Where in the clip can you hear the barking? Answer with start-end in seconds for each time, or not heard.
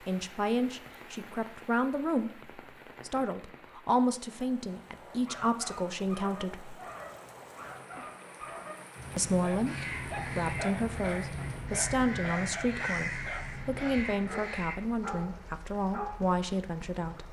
5.0-16.4.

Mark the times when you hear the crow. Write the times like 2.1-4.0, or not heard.
9.7-14.8.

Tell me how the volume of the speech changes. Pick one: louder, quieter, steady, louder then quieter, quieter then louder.
steady.